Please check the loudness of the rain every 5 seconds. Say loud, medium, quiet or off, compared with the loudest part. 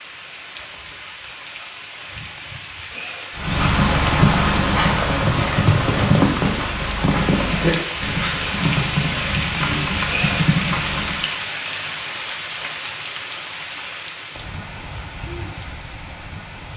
medium, loud, loud, medium.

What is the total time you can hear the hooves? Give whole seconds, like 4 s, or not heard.
8 s.